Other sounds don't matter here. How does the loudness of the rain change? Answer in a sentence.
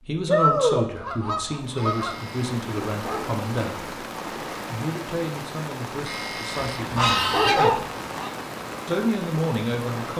The loudness of the rain stays about the same.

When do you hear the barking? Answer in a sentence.
The barking can be heard from 1.8 to 3.3 s and from 6.0 to 7.8 s.